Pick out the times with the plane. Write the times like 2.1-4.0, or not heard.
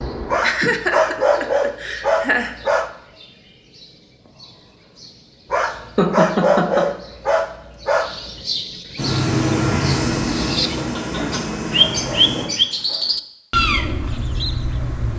8.9-12.5.